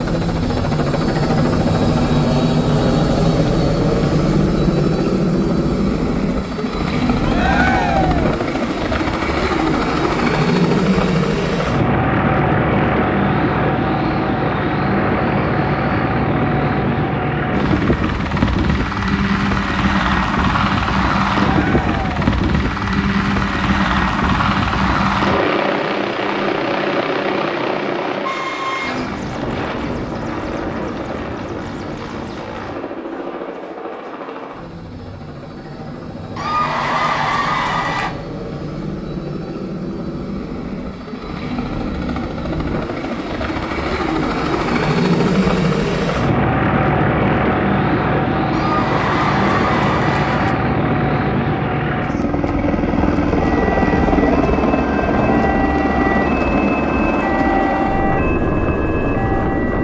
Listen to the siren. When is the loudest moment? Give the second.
58 s.